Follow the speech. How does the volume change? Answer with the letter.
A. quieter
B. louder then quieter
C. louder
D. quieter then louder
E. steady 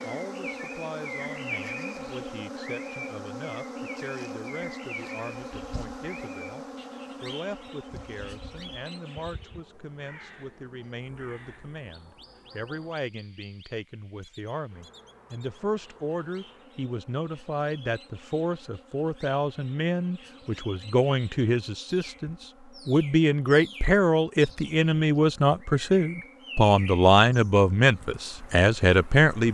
C.